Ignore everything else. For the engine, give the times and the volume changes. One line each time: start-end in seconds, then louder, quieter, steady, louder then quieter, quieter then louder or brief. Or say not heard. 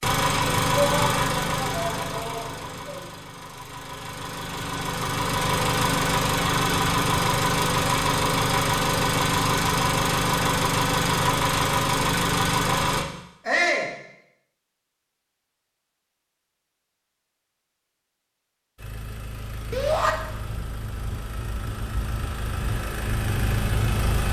0.0-13.1 quieter then louder
18.8-24.2 louder.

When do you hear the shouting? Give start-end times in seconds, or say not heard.
0.7-3.0, 13.4-13.9, 19.7-20.1.